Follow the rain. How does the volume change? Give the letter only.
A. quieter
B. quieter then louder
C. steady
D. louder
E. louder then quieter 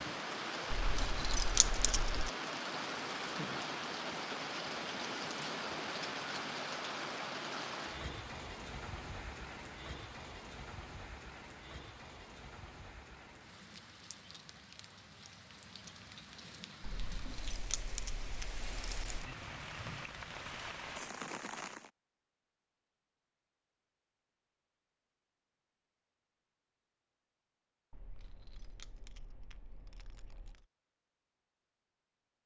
B.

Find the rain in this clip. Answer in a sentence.
You can hear the rain from 0.0 to 21.9 s.